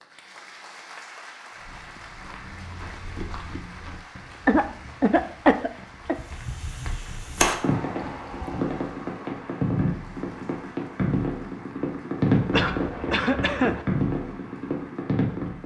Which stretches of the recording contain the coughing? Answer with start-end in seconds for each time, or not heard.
4.5-6.2, 12.5-13.8.